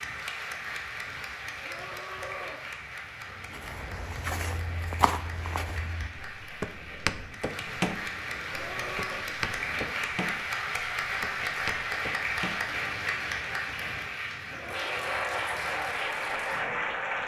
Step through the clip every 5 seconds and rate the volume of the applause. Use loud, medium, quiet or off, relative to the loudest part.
medium, medium, loud, loud.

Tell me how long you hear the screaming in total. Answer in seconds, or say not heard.
3 s.